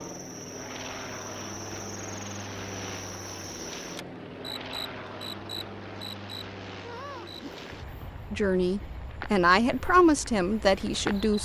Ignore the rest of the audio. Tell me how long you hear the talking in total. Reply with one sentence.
You can hear the talking for 3 seconds altogether.